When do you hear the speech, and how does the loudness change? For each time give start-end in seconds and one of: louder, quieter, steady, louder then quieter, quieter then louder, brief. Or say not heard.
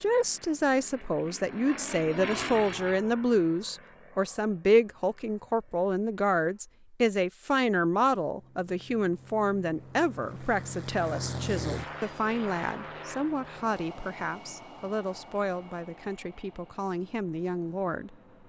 0.0-18.1 quieter.